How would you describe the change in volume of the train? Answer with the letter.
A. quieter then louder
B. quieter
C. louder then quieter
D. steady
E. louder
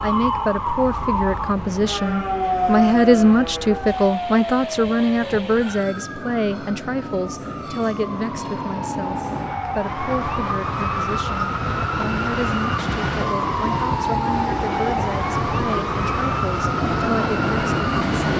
E.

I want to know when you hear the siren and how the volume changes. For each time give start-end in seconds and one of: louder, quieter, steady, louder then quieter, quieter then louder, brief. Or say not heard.
0.0-18.3 quieter then louder.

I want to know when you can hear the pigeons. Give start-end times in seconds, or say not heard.
not heard.